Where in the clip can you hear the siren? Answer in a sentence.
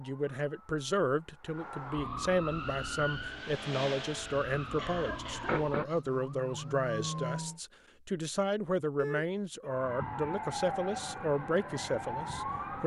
The siren can be heard from 0.0 to 7.6 s and from 9.7 to 12.8 s.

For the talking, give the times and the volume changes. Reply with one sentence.
You can hear the talking from 0.0 to 12.8 s, at a steady volume.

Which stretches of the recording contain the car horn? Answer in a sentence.
You can't hear the car horn here.